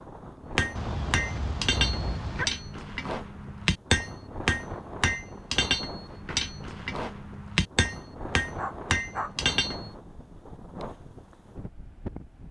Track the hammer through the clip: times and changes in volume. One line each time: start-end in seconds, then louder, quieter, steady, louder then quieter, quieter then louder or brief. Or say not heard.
0.5-9.9 steady.